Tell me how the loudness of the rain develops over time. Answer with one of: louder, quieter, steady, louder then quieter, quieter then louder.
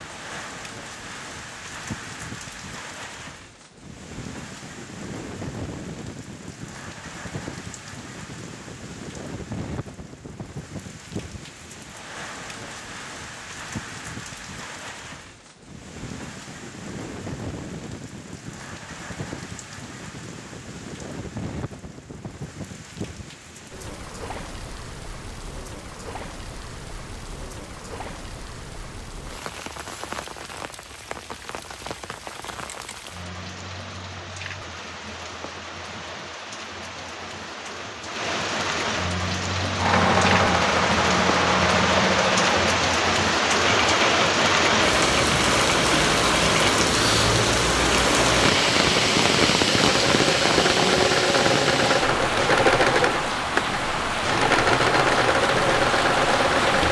louder.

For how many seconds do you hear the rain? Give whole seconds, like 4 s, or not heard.
57 s.